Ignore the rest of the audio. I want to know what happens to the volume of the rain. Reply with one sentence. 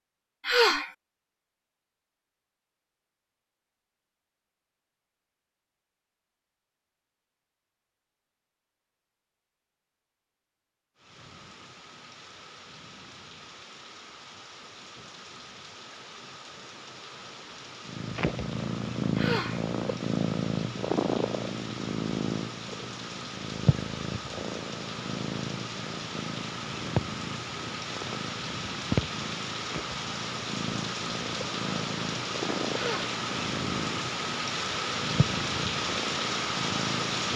The volume of the rain goes up.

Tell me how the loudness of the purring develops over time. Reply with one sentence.
The volume of the purring goes down.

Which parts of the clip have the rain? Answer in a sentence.
The rain can be heard from 10.9 to 37.3 s.